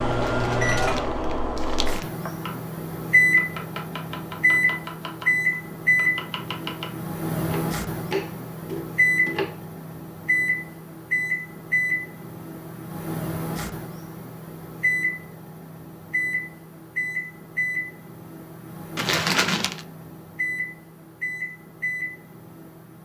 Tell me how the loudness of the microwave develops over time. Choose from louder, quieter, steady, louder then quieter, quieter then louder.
quieter.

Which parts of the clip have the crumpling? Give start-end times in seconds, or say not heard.
0.1-2.1, 18.9-19.9.